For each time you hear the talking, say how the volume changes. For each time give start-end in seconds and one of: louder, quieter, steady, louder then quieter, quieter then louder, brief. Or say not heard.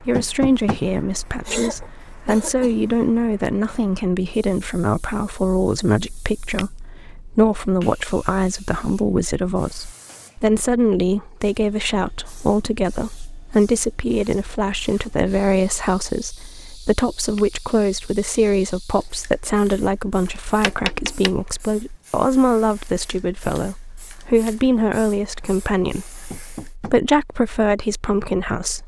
0.0-28.8 steady.